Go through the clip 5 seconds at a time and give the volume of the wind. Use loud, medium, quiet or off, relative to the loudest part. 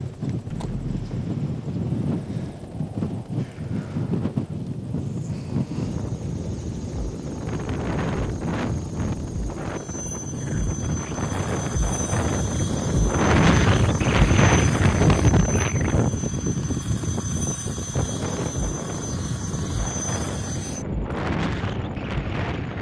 medium, medium, loud, loud, medium.